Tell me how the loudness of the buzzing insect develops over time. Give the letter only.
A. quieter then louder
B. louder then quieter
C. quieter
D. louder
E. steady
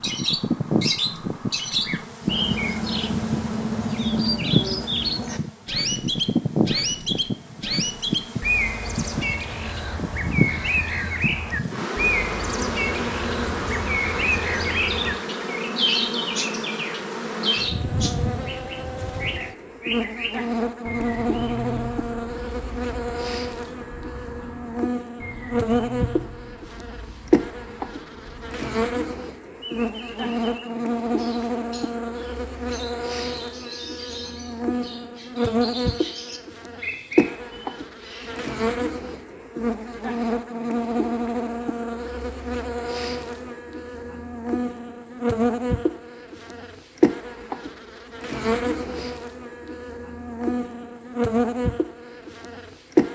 E.